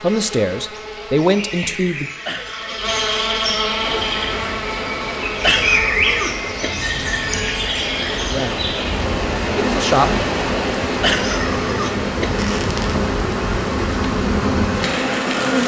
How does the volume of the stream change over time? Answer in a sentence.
The volume of the stream goes up, then down.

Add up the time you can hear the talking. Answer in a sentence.
You can hear the talking for 3 seconds altogether.